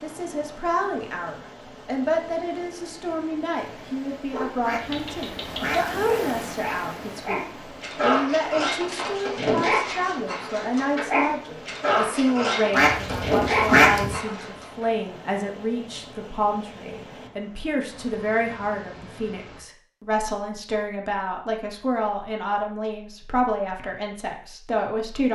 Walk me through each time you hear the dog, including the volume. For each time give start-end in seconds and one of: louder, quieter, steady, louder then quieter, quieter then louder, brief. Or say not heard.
4.3-14.8 louder.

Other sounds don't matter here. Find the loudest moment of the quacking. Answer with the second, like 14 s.
14 s.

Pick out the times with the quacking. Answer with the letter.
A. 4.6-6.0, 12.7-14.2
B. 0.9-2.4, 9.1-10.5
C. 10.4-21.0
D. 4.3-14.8
A.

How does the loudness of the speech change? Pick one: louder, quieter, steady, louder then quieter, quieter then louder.
steady.